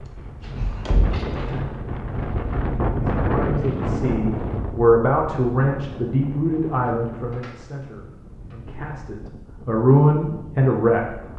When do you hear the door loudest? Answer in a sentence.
The volume of the door peaks at 1 second.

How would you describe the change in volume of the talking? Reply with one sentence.
The loudness of the talking goes down, then up.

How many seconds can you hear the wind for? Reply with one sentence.
The wind can be heard for 11 seconds in total.